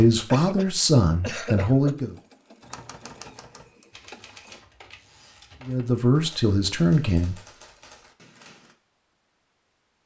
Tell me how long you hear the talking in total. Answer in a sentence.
The talking can be heard for 4 seconds in total.